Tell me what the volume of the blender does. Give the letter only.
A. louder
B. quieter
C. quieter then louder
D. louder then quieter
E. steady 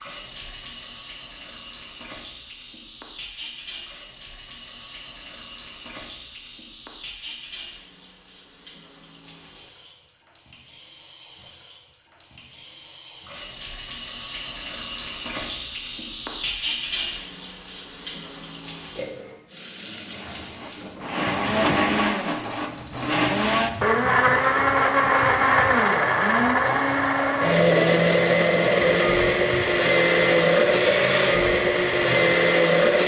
A.